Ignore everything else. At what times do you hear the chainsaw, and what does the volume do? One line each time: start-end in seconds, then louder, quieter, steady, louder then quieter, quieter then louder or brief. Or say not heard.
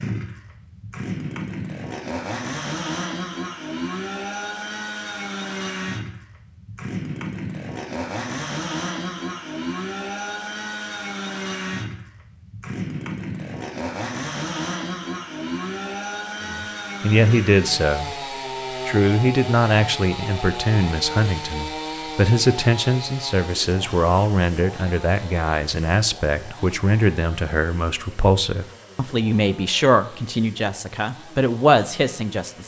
0.0-32.6 quieter.